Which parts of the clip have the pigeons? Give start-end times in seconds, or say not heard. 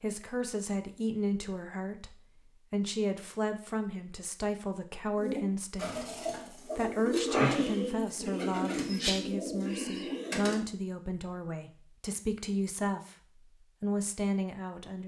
5.2-10.7.